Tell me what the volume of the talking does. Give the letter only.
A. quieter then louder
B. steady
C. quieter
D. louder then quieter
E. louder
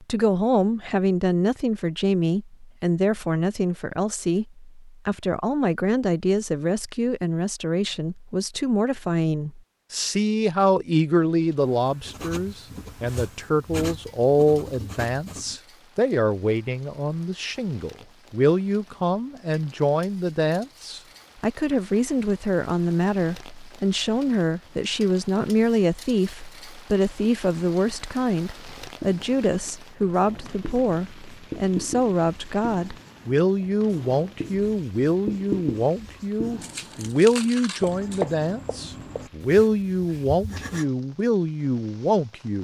B.